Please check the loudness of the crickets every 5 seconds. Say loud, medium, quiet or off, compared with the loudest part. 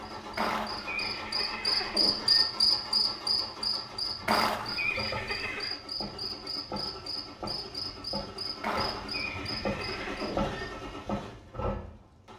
loud, medium, off.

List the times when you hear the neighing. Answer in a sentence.
The neighing can be heard from 0.3 to 2.5 s, from 4.2 to 5.8 s and from 8.6 to 10.6 s.